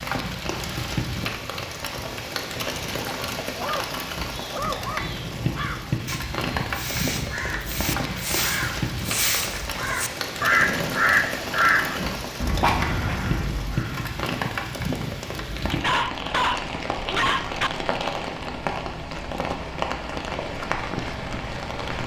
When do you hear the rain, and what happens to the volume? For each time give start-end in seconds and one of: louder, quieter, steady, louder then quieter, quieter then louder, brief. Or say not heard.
0.0-22.0 steady.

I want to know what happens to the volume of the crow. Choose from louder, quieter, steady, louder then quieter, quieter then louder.
louder then quieter.